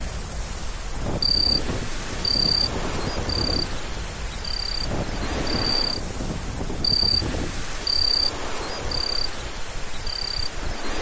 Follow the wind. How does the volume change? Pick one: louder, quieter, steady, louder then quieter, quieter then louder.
quieter.